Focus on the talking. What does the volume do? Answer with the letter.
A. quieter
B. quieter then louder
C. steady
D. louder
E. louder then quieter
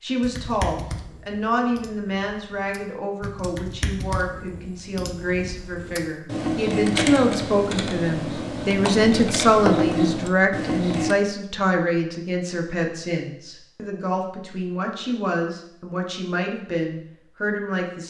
E.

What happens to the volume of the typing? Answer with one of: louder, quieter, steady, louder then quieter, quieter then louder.
louder.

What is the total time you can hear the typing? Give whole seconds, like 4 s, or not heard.
11 s.